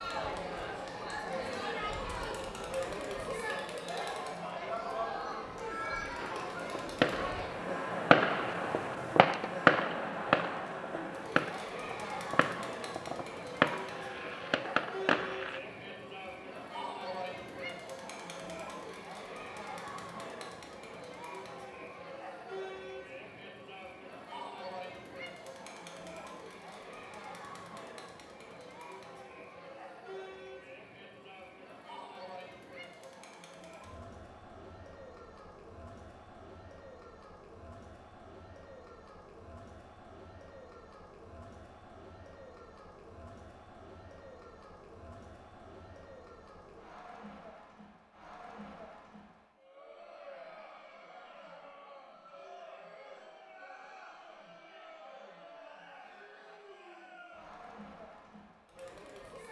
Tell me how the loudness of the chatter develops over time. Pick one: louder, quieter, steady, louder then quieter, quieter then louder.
quieter.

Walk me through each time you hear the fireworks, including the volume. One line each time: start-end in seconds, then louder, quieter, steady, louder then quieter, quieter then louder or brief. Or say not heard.
6.2-15.6 quieter then louder.